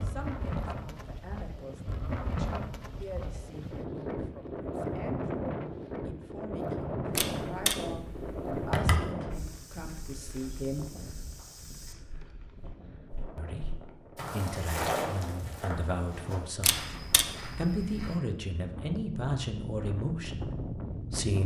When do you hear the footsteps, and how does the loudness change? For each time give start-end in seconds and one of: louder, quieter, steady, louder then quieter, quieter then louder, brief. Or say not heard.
9.3-18.2 louder then quieter.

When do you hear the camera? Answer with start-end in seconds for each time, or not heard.
7.2-9.1, 16.6-18.1.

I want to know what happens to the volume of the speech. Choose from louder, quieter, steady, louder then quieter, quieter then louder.
louder.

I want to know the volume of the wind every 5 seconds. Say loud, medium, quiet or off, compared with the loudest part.
loud, loud, quiet, medium, loud.